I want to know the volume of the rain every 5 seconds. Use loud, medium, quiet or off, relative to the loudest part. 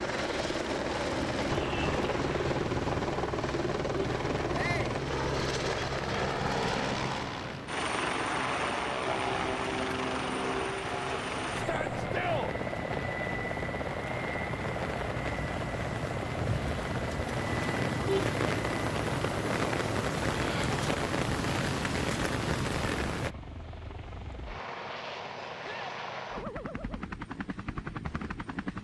medium, medium, medium, loud, loud, off.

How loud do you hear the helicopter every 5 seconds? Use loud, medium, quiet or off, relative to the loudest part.
loud, loud, loud, medium, medium, medium.